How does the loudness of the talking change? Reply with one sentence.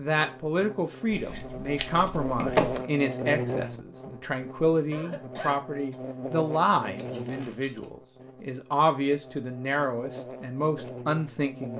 The loudness of the talking stays about the same.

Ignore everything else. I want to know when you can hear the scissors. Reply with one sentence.
You can hear the scissors from 1.1 to 2.8 s and from 7.0 to 7.8 s.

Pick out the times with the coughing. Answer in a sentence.
You can hear the coughing from 4.9 to 6.0 s.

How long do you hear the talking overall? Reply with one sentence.
The talking can be heard for 12 seconds in total.